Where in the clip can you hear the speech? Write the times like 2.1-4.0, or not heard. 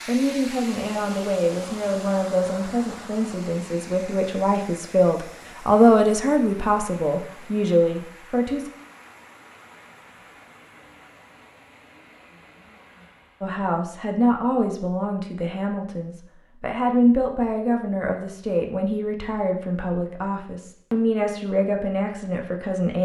0.1-8.7, 13.4-23.0.